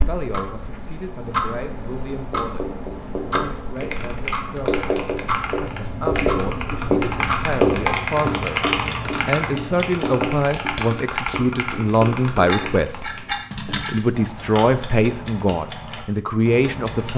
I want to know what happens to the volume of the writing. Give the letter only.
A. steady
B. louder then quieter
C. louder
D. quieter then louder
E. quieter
B.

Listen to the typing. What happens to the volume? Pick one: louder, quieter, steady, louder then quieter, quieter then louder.
louder then quieter.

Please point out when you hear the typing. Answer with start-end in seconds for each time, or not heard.
3.8-14.1.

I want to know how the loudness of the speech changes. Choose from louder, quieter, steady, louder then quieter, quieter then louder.
louder.